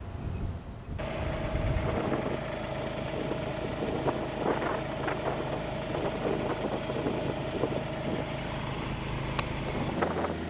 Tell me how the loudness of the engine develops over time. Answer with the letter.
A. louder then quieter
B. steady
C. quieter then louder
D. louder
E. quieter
B.